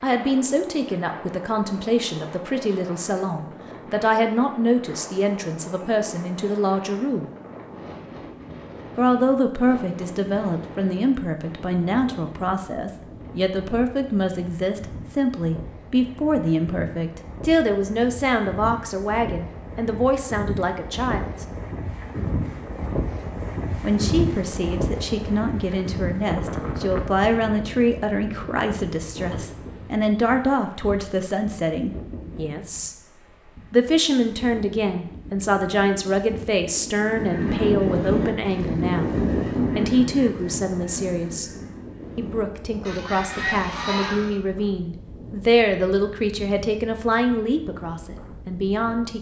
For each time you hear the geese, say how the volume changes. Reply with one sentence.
The geese can be heard from 37.0 to 44.4 s, getting quieter then louder.